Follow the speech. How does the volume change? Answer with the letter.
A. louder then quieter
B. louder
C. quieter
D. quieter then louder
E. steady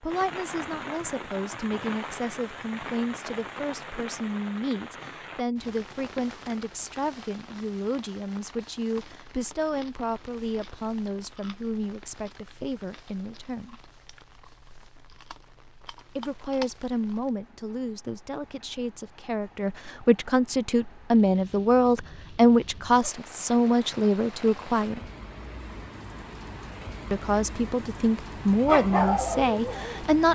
B.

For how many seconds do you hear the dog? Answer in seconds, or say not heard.
2 s.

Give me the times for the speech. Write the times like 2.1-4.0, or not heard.
0.0-13.8, 16.1-25.0, 27.1-30.3.